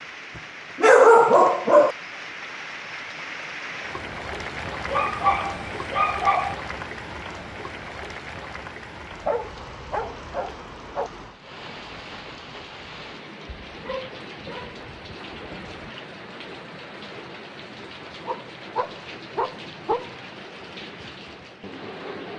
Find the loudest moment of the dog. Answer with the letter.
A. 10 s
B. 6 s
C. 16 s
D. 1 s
D.